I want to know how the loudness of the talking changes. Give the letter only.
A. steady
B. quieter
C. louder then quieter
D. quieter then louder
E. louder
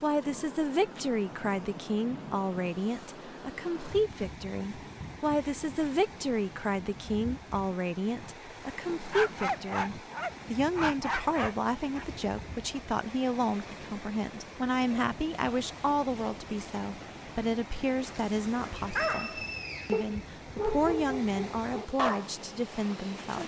A.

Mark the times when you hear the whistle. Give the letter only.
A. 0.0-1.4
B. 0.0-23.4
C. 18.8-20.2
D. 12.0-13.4
C.